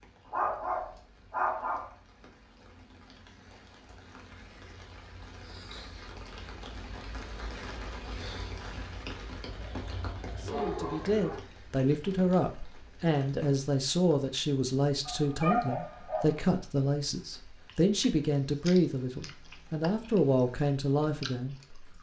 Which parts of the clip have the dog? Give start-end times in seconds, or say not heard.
0.3-1.9, 9.4-11.4, 15.1-16.5.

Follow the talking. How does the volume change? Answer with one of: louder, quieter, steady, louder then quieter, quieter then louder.
steady.